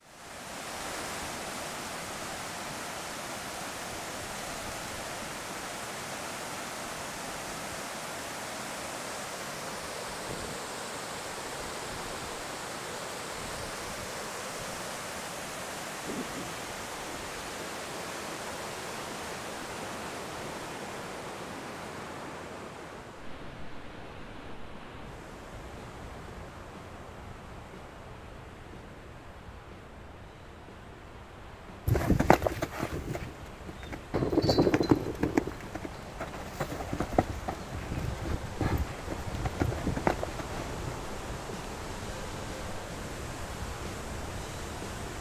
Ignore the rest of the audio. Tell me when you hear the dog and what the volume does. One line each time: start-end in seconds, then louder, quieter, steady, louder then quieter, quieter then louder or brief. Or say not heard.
not heard.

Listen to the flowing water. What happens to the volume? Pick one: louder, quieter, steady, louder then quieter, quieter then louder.
quieter then louder.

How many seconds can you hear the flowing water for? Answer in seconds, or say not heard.
45 s.